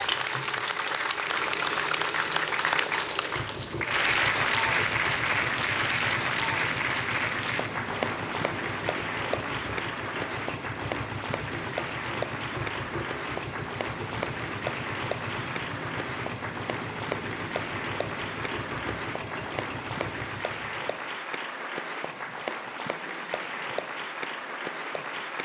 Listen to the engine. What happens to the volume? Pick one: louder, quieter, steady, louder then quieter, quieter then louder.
steady.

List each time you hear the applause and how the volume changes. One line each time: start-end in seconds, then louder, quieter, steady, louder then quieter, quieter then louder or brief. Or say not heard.
0.0-25.4 quieter.